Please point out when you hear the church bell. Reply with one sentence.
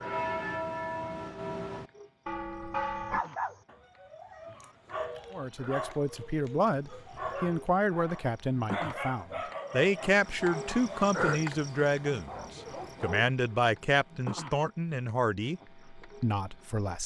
You can hear the church bell from 0.0 to 3.2 s.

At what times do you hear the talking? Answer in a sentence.
The talking can be heard from 5.3 to 17.0 s.